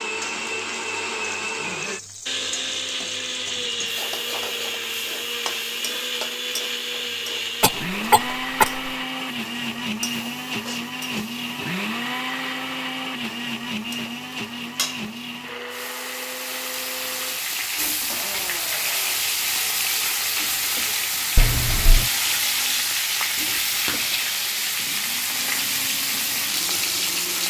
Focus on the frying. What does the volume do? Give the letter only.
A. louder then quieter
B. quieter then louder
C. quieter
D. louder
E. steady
D.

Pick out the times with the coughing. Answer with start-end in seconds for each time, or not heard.
7.6-8.8, 21.4-22.1.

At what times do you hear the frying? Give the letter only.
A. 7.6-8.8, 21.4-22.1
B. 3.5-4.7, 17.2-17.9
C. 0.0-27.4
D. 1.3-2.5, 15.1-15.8
C.